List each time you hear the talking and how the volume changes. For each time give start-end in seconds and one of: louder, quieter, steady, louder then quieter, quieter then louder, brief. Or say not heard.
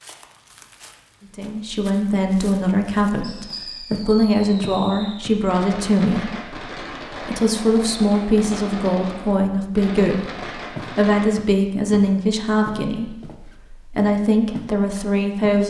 1.4-15.6 steady.